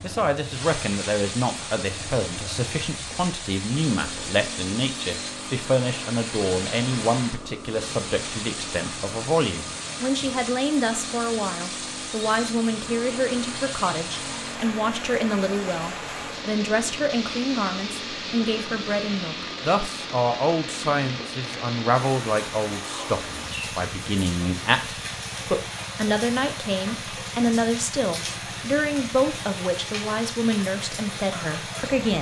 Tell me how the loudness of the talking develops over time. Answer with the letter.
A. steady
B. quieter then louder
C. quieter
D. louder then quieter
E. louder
A.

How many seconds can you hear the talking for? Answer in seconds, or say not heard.
32 s.